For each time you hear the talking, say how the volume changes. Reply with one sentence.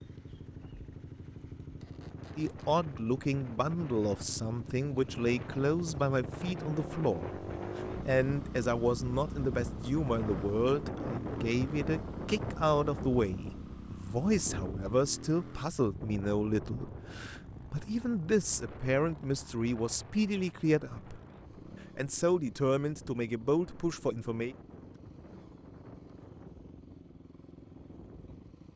You can hear the talking from 2.4 to 21.2 s, at a steady volume; and briefly from 21.9 to 24.6 s.